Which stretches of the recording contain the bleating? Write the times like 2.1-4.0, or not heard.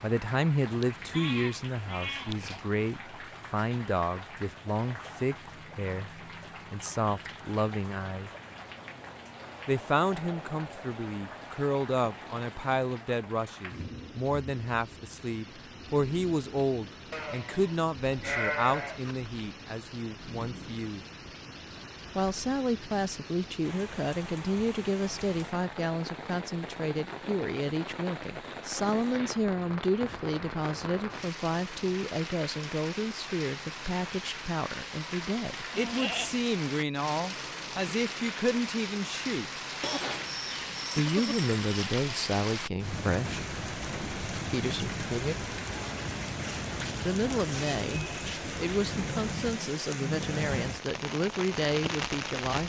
0.6-2.6, 17.1-19.1, 35.7-36.4, 39.8-41.6.